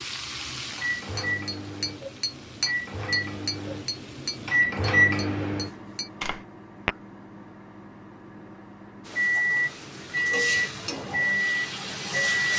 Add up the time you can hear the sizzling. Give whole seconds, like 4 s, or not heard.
8 s.